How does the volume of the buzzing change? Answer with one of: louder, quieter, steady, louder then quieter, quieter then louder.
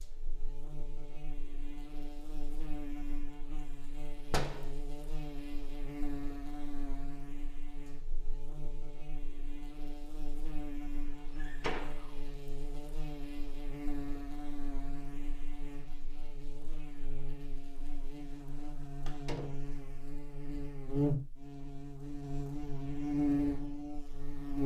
louder.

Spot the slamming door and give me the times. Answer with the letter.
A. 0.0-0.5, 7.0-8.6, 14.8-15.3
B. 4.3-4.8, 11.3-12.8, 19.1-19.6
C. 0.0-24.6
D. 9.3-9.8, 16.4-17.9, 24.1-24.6
B.